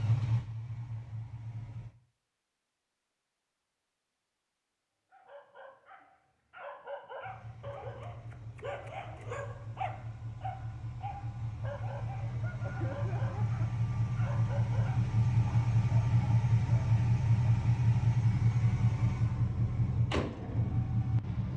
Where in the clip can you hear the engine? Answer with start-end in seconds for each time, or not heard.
0.0-1.9, 7.2-21.5.